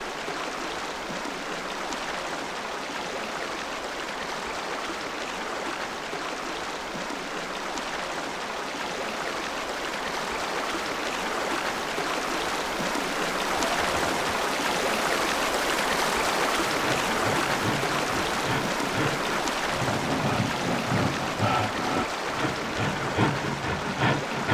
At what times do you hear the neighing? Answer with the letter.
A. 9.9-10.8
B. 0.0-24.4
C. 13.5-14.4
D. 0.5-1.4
C.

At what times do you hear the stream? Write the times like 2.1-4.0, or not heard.
0.0-24.4.